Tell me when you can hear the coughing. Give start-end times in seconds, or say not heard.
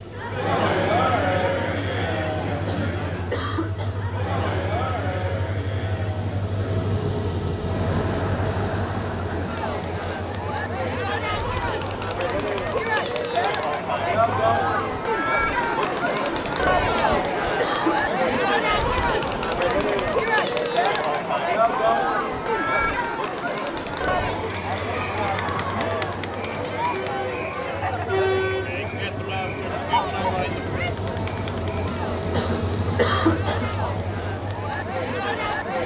2.6-4.2, 16.9-18.4, 32.2-34.0.